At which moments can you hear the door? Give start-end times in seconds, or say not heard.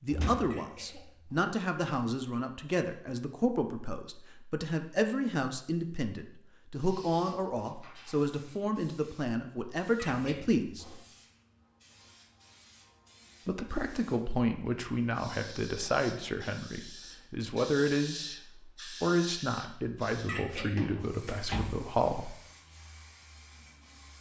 0.1-1.0, 21.2-21.9.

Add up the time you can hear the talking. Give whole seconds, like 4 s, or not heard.
20 s.